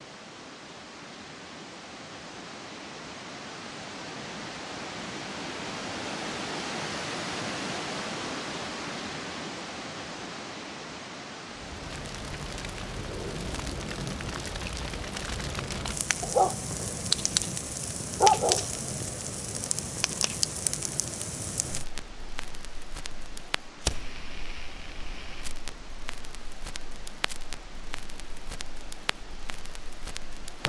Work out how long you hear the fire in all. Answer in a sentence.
You can hear the fire for 19 seconds altogether.